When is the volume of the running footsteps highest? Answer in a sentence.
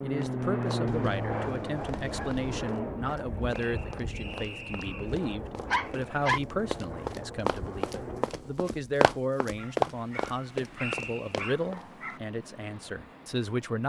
The volume of the running footsteps peaks at 10 seconds.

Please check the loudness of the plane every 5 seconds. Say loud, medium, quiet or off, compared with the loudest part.
loud, medium, quiet.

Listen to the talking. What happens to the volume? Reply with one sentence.
The volume of the talking stays about the same.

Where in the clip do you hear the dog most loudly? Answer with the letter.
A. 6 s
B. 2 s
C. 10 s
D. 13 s
A.